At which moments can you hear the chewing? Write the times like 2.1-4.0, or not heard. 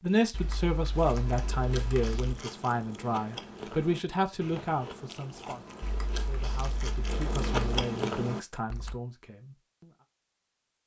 0.9-9.0.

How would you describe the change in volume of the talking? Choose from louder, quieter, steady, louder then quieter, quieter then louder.
quieter.